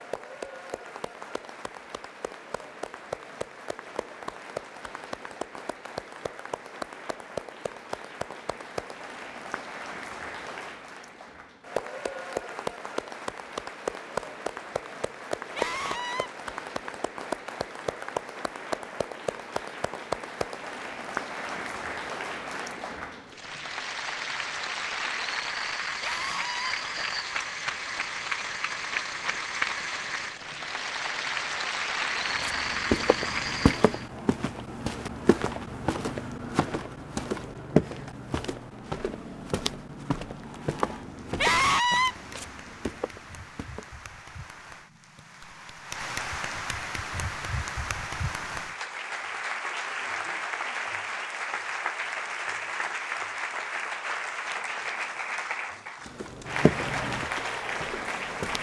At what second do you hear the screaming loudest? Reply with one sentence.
The volume of the screaming peaks at 42 seconds.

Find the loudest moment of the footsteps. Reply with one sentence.
The loudest moment of the footsteps is at 38 seconds.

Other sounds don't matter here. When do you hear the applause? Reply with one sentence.
You can hear the applause from 0.0 to 34.0 s and from 40.3 to 58.5 s.